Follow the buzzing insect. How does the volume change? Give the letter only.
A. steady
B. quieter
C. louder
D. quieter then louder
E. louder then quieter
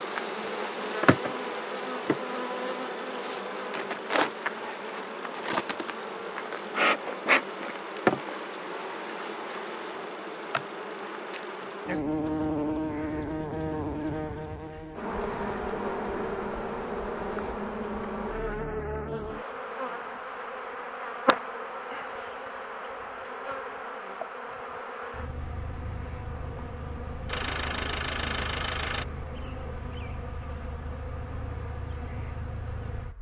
B.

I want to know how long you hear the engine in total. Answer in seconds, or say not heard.
2 s.